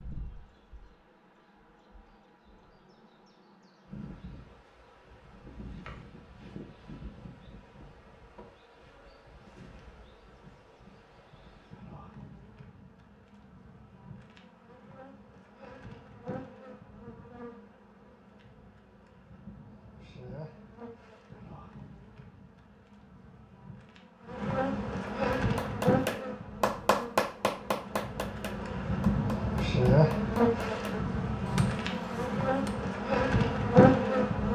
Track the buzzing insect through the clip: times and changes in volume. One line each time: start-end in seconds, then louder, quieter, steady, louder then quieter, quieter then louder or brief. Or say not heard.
0.0-34.4 louder.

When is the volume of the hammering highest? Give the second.
27 s.